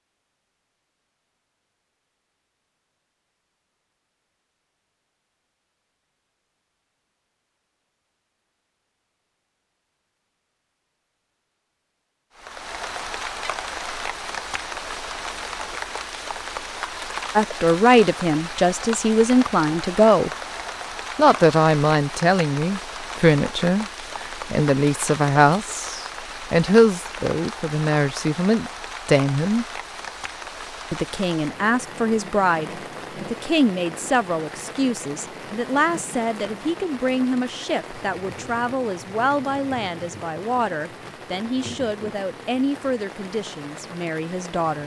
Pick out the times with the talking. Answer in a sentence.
The talking can be heard from 17.4 to 20.3 s, from 21.1 to 29.6 s and from 30.9 to 44.8 s.